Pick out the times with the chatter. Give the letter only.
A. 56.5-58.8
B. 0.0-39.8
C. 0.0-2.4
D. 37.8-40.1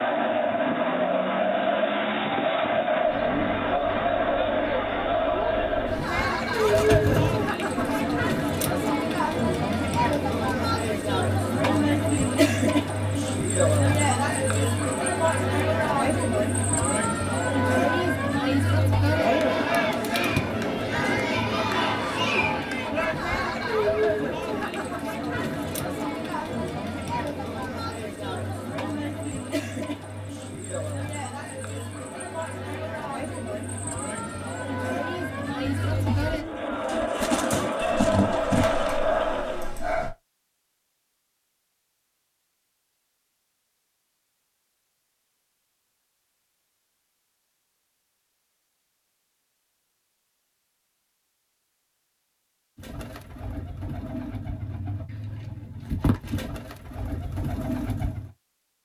B.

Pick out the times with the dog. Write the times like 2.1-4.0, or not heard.
37.8-40.1.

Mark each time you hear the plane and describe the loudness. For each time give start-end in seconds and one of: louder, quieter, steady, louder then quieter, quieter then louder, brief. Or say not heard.
not heard.